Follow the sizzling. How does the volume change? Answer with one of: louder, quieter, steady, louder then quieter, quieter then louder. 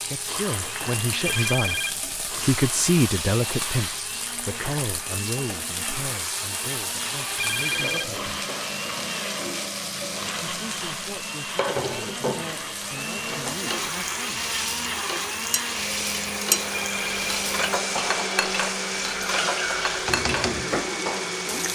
steady.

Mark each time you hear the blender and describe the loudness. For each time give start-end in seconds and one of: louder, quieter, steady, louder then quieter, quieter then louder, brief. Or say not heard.
0.1-21.7 louder.